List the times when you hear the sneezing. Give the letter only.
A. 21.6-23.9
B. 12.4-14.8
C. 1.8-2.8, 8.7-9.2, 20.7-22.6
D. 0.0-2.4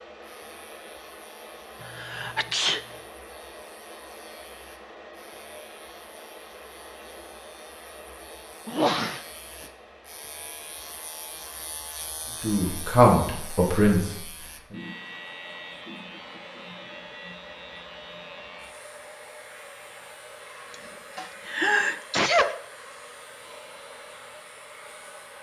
C.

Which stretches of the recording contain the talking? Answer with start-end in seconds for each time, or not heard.
12.4-14.8.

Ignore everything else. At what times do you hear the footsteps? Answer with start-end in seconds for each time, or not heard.
not heard.